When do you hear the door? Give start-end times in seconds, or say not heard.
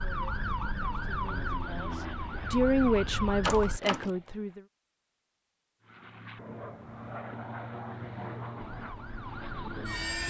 3.4-4.1.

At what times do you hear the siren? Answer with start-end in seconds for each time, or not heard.
0.0-3.8, 8.6-10.2.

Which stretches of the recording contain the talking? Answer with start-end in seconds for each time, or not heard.
0.0-4.6.